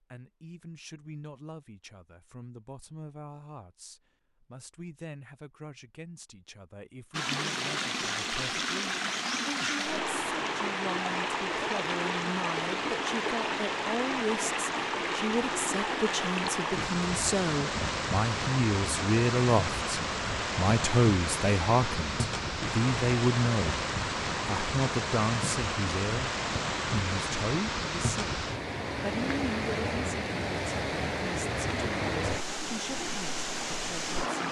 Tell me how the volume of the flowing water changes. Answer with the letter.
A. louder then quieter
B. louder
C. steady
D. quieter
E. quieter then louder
C.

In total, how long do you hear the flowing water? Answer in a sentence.
You can hear the flowing water for 27 seconds altogether.